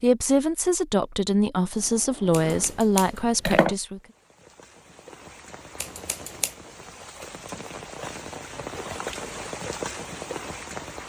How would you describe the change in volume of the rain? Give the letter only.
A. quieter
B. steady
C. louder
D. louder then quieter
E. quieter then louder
C.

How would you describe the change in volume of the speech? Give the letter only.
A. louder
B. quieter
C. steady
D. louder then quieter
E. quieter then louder
C.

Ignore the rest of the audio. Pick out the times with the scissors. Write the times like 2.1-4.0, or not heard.
2.3-3.8, 5.8-6.5.